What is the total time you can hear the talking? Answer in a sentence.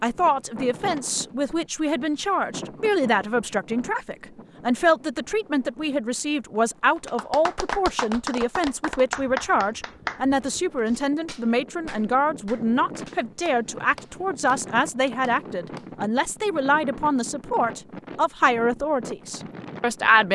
You can hear the talking for 20 seconds altogether.